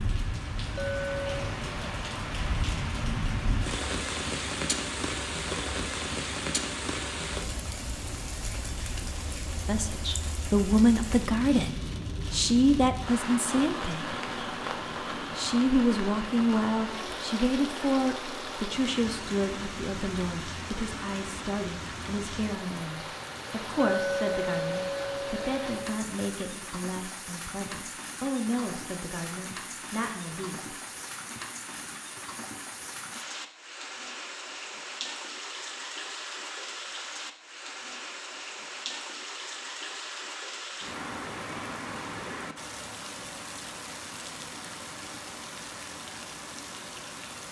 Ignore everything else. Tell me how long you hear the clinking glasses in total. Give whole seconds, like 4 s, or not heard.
3 s.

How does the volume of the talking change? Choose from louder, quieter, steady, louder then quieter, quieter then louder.
quieter.